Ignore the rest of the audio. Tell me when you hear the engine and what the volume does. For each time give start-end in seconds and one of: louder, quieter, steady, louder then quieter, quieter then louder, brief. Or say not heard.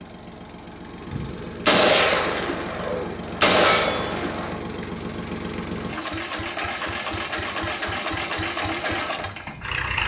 0.0-10.0 louder.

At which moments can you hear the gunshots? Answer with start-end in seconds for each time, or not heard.
1.1-4.6.